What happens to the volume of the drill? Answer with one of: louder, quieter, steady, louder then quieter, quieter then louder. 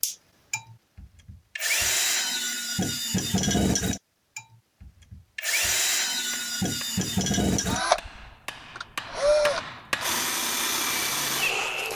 steady.